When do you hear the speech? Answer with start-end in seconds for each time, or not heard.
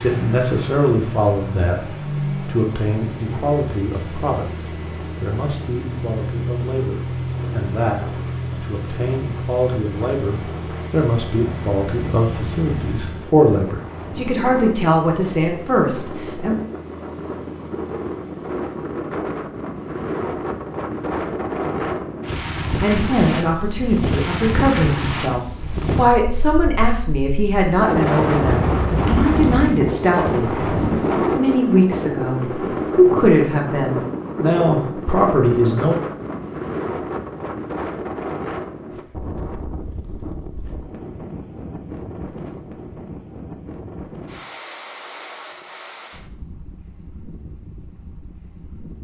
0.0-16.6, 22.8-36.0.